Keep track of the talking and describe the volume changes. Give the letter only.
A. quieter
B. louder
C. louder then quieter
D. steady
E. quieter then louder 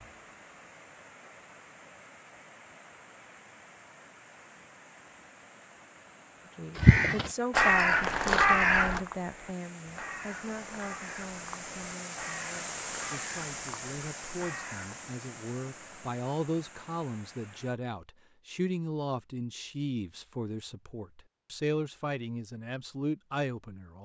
E.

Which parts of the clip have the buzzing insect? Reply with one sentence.
You can't hear the buzzing insect here.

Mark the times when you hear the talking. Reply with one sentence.
You can hear the talking from 6.5 to 24.0 s.